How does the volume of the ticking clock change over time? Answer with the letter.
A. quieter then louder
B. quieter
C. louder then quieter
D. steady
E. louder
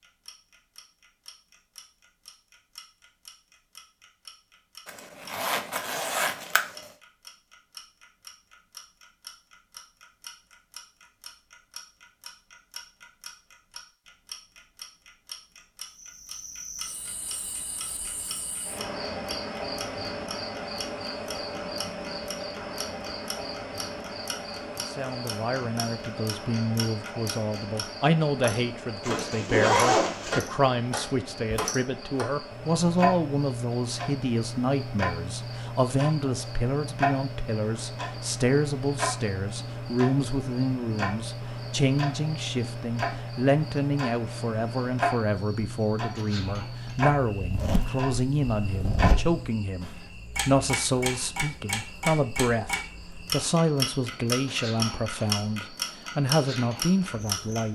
E.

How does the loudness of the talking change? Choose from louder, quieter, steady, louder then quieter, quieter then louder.
steady.